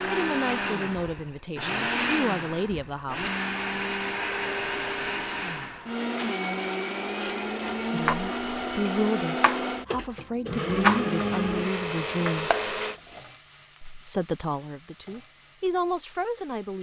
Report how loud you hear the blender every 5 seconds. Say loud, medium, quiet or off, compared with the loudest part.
loud, loud, loud, off.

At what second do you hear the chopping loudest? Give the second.
11 s.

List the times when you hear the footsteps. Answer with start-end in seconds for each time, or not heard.
not heard.